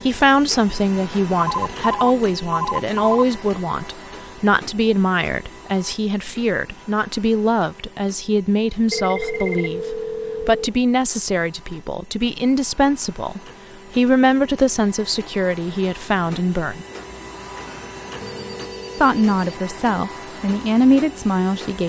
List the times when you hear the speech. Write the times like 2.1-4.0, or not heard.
0.1-16.9, 18.9-21.8.